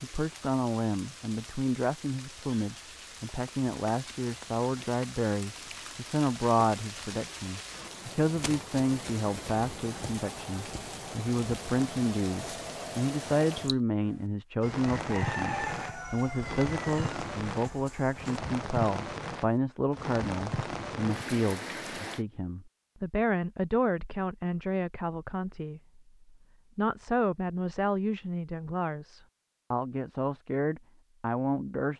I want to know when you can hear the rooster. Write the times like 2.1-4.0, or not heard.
14.6-18.4.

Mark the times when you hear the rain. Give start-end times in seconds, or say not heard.
0.0-22.2.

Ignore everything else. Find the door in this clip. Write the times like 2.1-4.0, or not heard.
not heard.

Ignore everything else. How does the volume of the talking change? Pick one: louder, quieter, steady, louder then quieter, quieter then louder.
steady.